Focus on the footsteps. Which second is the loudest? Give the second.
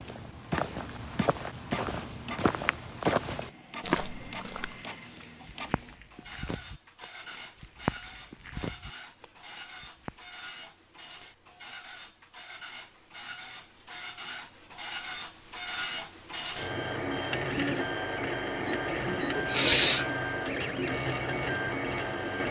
3 s.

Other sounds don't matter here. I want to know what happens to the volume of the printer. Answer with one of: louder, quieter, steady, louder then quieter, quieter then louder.
louder.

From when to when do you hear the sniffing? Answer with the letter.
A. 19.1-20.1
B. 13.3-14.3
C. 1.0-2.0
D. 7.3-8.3
A.